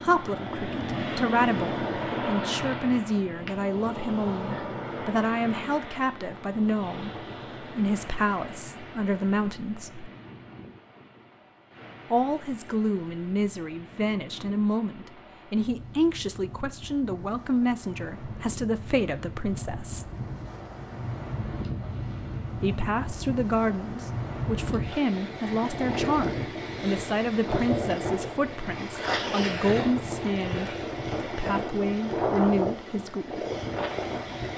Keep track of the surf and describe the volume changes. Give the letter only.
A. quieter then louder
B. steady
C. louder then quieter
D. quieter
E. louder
A.